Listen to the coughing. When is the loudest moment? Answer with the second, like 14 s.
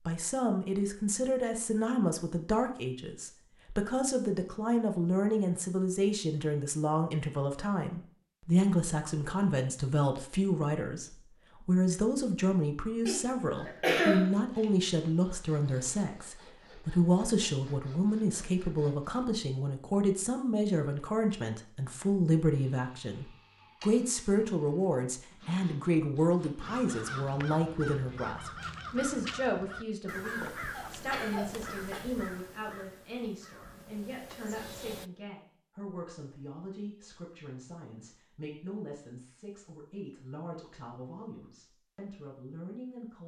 14 s.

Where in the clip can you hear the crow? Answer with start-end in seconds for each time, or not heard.
26.6-35.1.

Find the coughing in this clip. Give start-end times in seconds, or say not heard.
13.1-14.2, 30.7-32.1.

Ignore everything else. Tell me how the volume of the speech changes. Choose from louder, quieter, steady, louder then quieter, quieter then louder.
quieter.